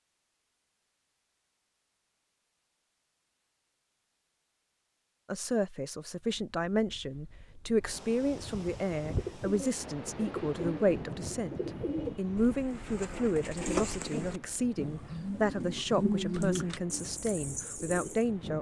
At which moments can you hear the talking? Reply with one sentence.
The talking can be heard from 5.3 to 18.5 s.